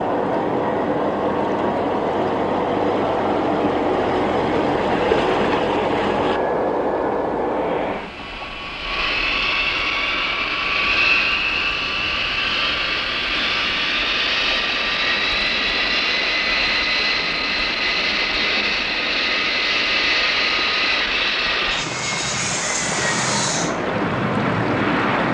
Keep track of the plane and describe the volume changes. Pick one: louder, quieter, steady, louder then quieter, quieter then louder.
steady.